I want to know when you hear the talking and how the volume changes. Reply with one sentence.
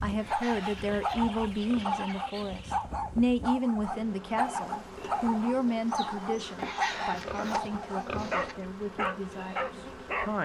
You can hear the talking from 0.0 to 10.4 s, getting quieter.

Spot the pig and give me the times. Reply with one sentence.
You can hear the pig from 0.1 to 2.1 s and from 6.5 to 8.6 s.